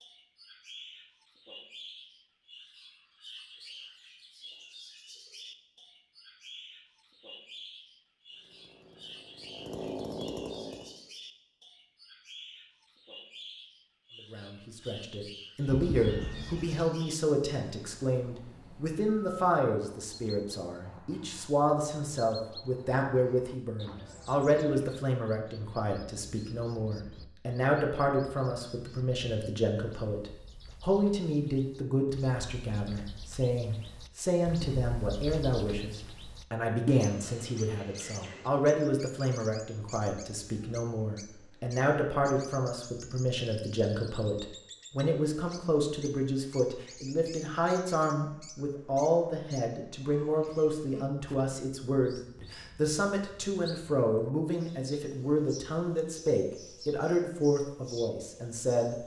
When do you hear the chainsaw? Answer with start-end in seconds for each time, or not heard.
8.3-11.0.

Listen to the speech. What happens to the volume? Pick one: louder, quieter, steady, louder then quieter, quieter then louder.
steady.